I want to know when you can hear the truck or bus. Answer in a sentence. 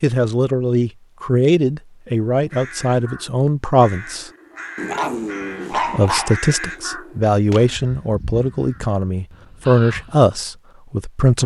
You can't hear the truck or bus here.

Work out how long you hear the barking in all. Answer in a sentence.
You can hear the barking for 2 seconds altogether.